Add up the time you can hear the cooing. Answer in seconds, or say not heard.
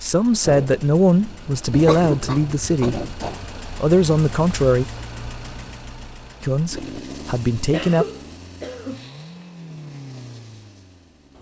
not heard.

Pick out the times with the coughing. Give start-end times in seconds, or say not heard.
1.9-2.9, 7.5-9.1.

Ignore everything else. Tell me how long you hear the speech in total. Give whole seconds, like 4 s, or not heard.
6 s.